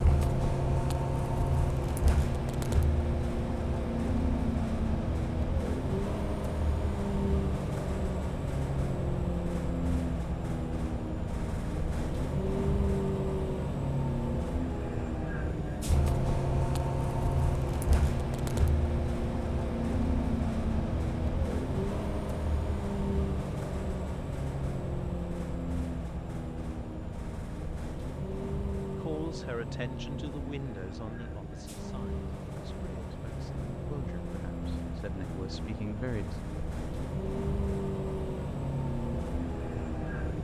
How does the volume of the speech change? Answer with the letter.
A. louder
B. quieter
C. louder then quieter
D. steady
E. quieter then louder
E.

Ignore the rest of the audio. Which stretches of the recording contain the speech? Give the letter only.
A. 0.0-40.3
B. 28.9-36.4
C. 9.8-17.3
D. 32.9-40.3
B.